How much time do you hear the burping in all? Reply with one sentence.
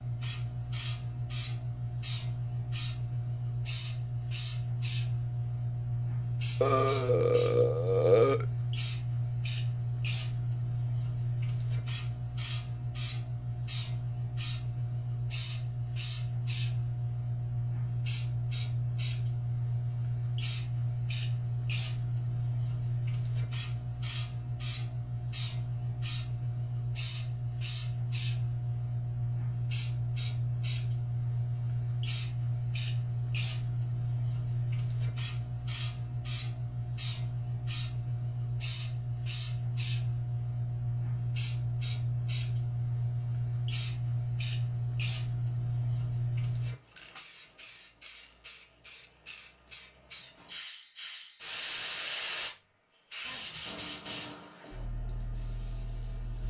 You can hear the burping for 2 seconds altogether.